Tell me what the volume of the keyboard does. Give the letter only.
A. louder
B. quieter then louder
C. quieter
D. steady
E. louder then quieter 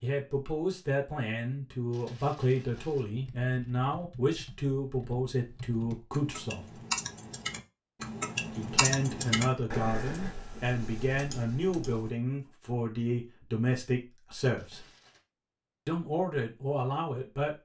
E.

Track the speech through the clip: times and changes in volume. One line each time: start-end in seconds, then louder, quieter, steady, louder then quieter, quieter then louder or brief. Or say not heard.
0.0-6.8 steady
8.5-14.9 steady
15.8-17.6 brief.